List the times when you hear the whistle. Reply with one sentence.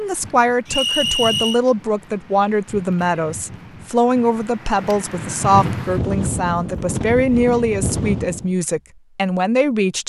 The whistle can be heard from 0.7 to 1.6 s.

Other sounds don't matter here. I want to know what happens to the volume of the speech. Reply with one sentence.
The loudness of the speech stays about the same.